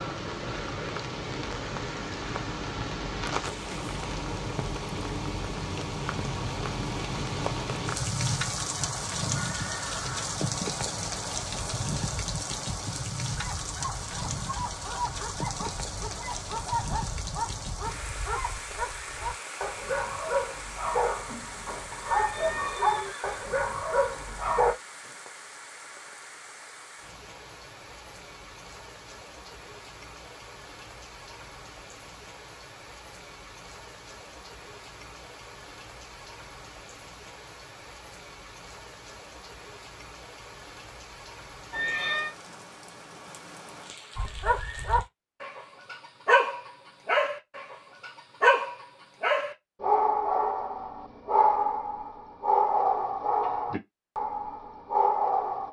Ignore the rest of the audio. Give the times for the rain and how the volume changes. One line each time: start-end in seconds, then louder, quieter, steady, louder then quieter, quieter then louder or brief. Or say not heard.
0.0-45.1 quieter.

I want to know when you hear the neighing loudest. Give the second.
42 s.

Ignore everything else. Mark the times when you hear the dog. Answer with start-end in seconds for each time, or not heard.
13.3-24.8, 44.1-55.6.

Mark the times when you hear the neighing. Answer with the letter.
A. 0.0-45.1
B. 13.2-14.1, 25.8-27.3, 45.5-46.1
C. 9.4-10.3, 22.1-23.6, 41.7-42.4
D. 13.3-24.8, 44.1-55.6
C.